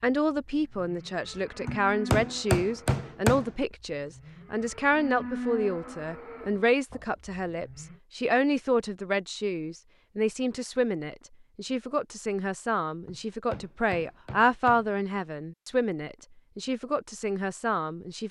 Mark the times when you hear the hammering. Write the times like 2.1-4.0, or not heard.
1.6-3.5, 13.1-14.9.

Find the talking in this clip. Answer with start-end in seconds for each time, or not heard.
0.0-18.2.